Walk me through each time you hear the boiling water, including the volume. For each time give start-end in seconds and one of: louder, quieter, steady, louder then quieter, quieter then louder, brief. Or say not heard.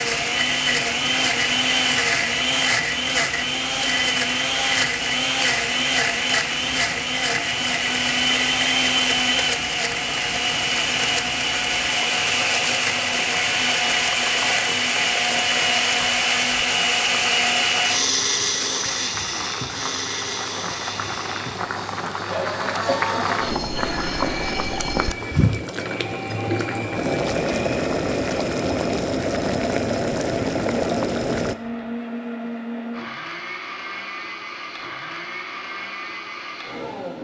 0.0-31.6 louder.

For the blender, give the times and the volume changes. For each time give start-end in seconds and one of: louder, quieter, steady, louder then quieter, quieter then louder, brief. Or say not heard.
0.0-37.1 quieter.